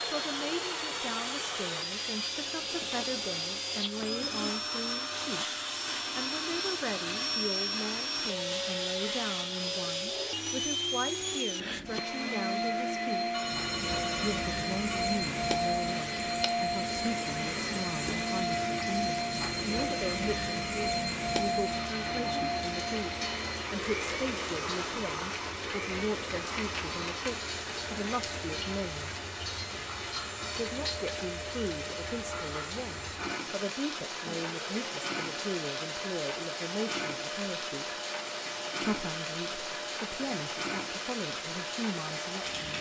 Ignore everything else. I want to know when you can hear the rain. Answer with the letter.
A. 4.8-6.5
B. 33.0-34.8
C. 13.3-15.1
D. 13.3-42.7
D.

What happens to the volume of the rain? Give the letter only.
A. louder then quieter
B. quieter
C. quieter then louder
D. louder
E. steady
E.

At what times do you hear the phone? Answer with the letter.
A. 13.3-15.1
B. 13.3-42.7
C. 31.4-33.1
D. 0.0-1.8
A.